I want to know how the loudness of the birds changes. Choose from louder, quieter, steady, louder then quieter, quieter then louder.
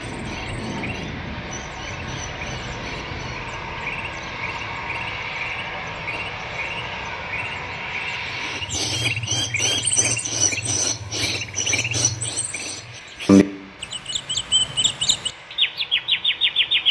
louder.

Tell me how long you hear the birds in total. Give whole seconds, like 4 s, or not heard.
17 s.